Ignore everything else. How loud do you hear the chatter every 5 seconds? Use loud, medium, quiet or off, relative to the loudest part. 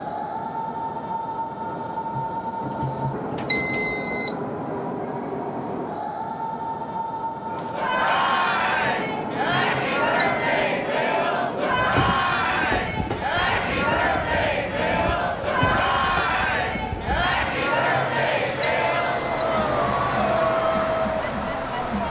off, loud, loud, loud, loud.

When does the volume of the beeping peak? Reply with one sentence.
The volume of the beeping peaks at 4 seconds.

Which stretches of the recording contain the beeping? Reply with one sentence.
You can hear the beeping from 2.1 to 4.3 s, from 8.8 to 10.9 s and from 17.2 to 19.4 s.